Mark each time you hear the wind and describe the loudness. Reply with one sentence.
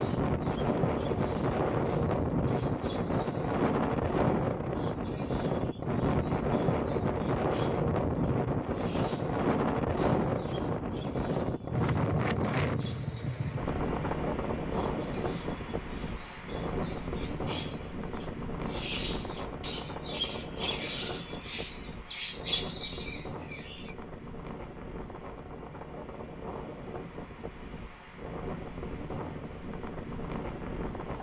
You can hear the wind from 0.0 to 31.1 s, getting quieter.